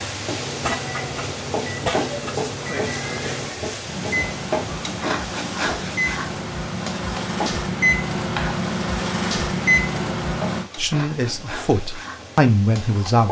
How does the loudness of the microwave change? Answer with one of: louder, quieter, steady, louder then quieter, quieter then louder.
louder.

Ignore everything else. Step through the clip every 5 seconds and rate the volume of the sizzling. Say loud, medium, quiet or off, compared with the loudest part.
loud, loud, medium.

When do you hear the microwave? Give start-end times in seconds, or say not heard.
0.2-10.7.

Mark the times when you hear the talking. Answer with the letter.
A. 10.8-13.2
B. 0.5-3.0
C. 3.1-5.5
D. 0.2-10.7
A.